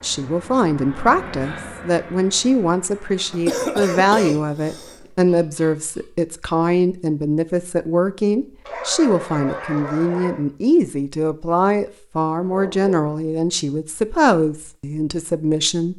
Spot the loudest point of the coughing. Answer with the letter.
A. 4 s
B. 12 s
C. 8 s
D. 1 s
A.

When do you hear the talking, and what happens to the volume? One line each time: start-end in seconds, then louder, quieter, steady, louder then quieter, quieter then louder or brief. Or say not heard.
0.0-15.9 steady.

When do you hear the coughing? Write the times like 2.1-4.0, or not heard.
3.3-5.1.